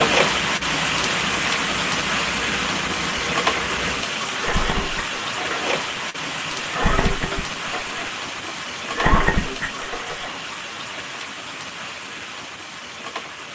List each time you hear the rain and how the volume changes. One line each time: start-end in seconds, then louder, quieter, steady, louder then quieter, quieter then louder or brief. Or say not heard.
0.0-13.5 quieter.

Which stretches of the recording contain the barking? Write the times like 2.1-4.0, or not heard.
not heard.